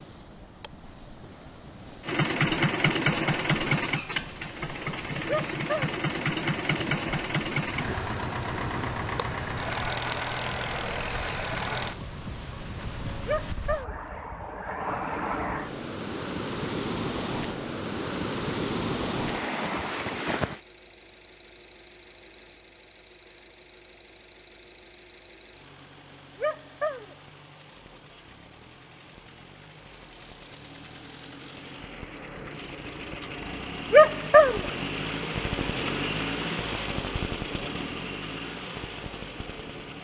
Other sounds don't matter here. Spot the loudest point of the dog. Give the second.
34 s.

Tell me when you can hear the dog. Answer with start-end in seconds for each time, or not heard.
5.2-6.0, 13.2-14.0, 26.4-27.1, 33.9-34.6.